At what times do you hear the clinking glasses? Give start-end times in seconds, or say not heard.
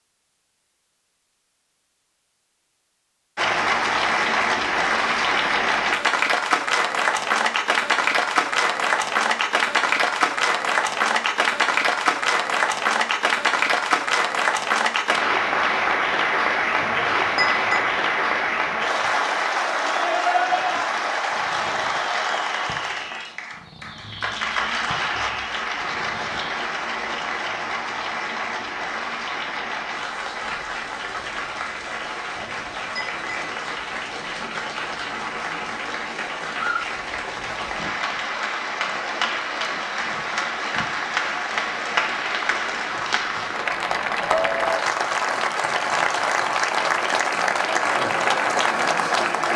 16.8-17.8, 32.4-33.4.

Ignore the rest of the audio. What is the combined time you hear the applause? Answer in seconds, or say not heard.
46 s.